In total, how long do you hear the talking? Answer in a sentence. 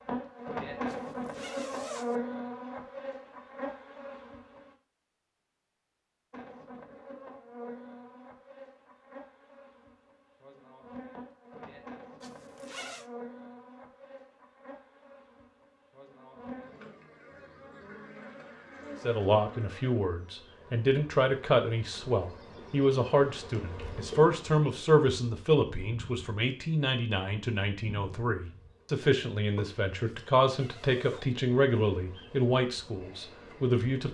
You can hear the talking for 15 seconds altogether.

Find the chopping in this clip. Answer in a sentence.
The chopping can't be heard in this clip.